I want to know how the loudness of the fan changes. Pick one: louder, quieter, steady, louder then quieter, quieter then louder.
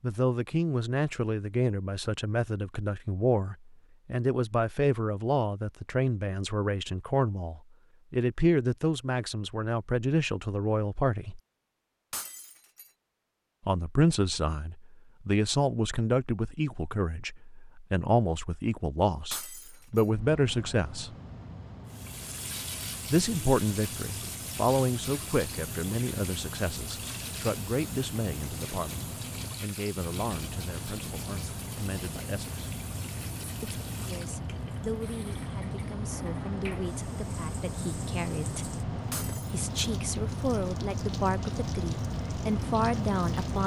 louder.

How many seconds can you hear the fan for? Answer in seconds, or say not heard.
24 s.